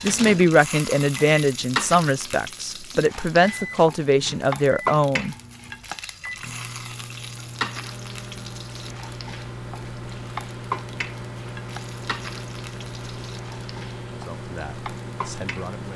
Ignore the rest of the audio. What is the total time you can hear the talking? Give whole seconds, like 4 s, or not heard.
7 s.